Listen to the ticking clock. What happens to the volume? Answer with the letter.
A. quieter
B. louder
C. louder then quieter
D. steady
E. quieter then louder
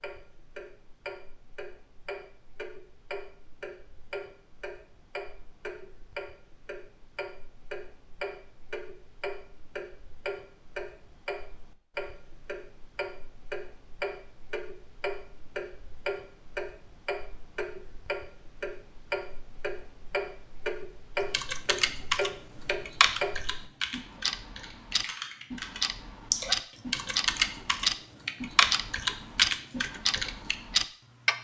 B.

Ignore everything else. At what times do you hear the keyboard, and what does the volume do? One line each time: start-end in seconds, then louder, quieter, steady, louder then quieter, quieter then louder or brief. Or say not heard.
21.3-30.6 quieter then louder.